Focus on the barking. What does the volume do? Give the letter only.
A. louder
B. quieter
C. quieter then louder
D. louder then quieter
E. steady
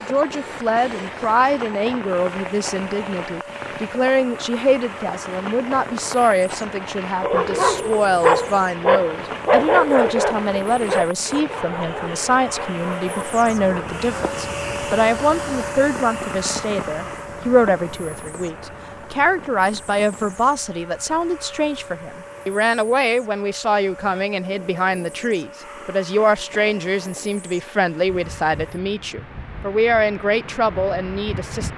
B.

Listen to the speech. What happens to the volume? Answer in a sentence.
The loudness of the speech stays about the same.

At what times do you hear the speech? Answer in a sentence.
The speech can be heard from 0.0 to 31.7 s.